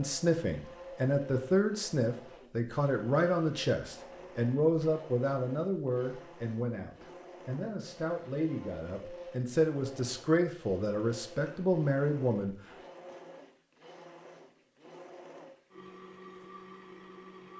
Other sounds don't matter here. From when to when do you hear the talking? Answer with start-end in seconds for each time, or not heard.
0.0-12.6.